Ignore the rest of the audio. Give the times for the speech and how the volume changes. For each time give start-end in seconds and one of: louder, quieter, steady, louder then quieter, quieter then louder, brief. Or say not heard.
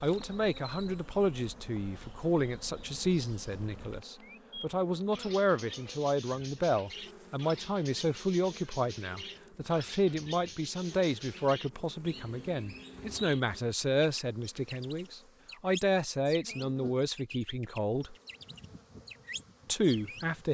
0.0-18.1 steady
19.6-20.5 brief.